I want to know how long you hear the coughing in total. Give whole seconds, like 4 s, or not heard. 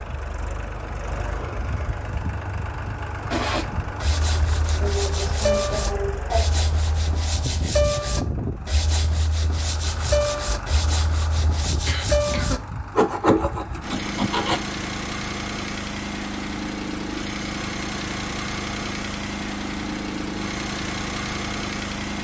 3 s.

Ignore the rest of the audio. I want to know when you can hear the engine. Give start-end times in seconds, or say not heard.
0.0-22.1.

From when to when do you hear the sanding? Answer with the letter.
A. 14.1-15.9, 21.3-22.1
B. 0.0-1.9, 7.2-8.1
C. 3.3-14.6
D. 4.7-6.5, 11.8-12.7
C.